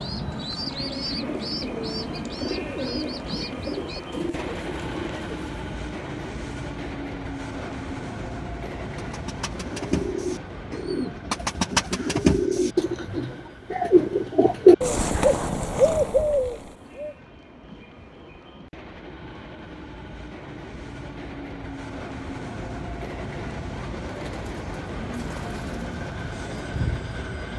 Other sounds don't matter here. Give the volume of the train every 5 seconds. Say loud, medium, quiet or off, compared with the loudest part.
loud, loud, medium, medium, loud, loud.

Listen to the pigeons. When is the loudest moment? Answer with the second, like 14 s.
15 s.